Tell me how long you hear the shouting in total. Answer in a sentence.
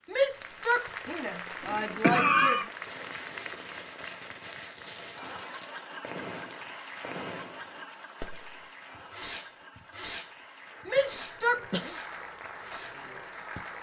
You can hear the shouting for 4 seconds altogether.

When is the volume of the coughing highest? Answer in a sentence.
The loudest moment of the coughing is at 2 seconds.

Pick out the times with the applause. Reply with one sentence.
You can hear the applause from 0.0 to 13.7 s.